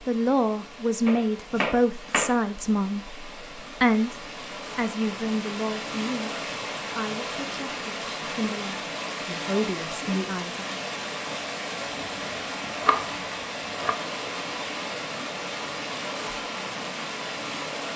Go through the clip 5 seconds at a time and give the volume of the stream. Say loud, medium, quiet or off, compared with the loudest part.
medium, loud, loud, loud.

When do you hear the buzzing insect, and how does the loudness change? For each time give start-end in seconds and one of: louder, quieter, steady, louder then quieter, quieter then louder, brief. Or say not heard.
not heard.